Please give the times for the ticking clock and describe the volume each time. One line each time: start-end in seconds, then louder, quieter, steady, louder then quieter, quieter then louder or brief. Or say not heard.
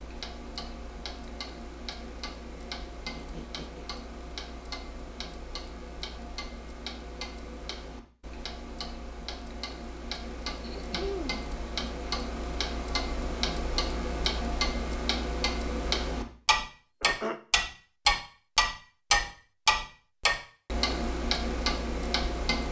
0.0-22.6 louder.